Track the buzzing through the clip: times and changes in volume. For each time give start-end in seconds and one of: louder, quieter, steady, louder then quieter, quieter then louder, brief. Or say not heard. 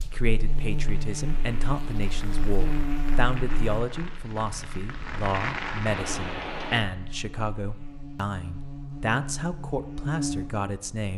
0.0-11.1 quieter then louder.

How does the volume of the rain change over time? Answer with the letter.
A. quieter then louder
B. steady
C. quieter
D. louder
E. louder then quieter
D.